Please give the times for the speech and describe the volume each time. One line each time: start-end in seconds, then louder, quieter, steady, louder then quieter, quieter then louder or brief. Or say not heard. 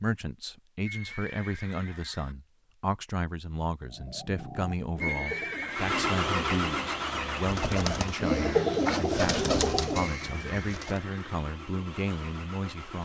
0.0-12.9 steady.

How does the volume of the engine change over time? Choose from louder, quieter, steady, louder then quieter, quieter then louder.
quieter.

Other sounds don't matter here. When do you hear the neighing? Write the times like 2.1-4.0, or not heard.
0.8-2.4, 5.0-6.0, 10.1-11.4.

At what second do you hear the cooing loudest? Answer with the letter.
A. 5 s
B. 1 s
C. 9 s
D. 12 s
C.